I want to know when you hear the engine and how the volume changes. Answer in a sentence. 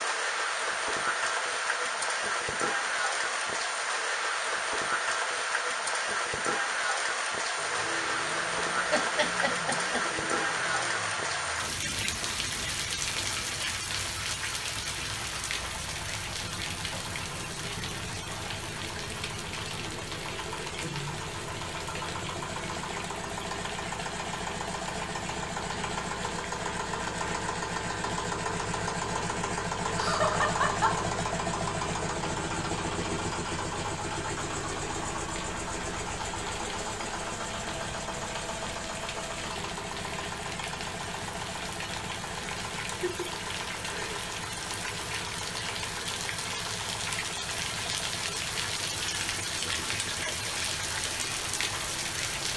The engine can be heard from 7.5 to 52.5 s, getting louder then quieter.